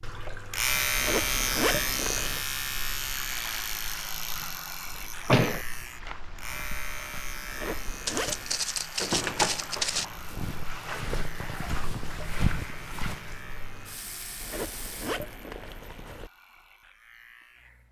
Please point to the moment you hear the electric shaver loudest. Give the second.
1 s.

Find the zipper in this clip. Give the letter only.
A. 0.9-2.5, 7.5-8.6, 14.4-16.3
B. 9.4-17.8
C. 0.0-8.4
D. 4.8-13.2
A.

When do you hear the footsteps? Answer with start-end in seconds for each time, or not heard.
4.8-13.2.